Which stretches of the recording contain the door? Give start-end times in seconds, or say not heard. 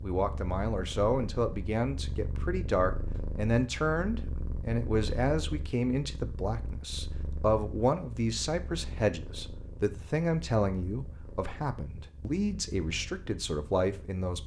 not heard.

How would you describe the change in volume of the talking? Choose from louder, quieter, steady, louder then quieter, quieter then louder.
steady.